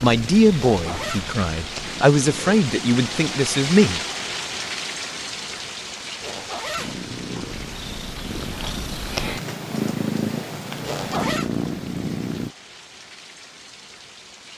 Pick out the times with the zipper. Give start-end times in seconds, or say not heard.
0.7-1.3, 6.2-7.5, 10.8-11.5.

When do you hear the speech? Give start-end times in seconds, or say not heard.
0.0-4.0.